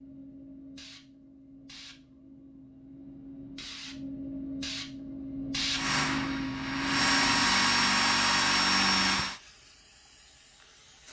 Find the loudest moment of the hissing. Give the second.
6 s.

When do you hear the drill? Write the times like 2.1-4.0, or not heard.
5.7-9.4.